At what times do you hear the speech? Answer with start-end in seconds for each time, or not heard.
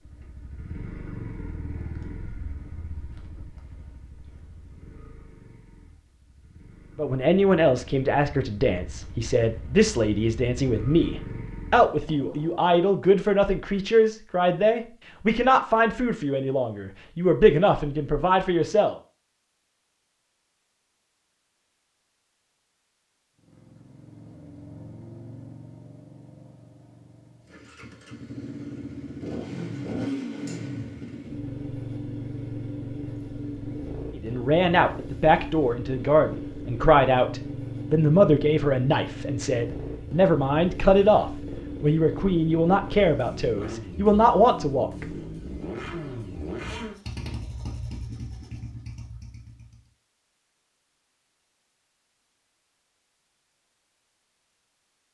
7.0-18.9, 34.1-45.0.